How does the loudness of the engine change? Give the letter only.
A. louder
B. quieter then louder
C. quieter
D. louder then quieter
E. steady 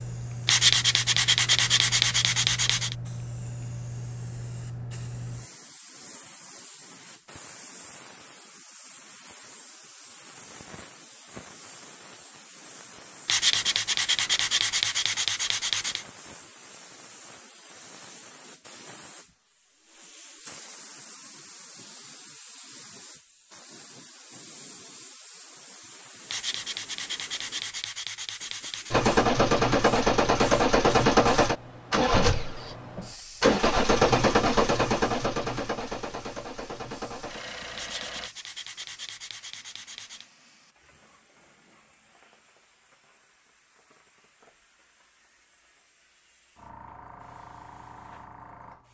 C.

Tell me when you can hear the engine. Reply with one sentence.
You can hear the engine from 28.9 to 38.3 s.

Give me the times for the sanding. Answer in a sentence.
You can hear the sanding from 0.5 to 3.0 s, from 13.2 to 16.1 s, from 26.2 to 29.0 s and from 37.8 to 40.2 s.